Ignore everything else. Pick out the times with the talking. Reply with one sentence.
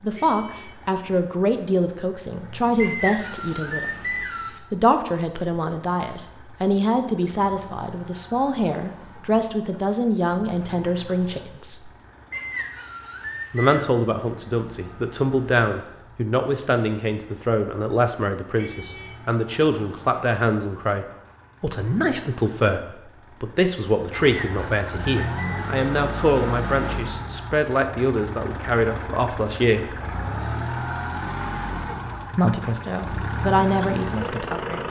The talking can be heard from 0.0 to 3.9 s, from 4.7 to 11.9 s, from 13.5 to 30.0 s and from 32.3 to 34.8 s.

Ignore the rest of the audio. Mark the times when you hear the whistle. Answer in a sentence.
You can hear the whistle from 2.8 to 4.6 s, from 12.3 to 13.9 s and from 24.1 to 25.9 s.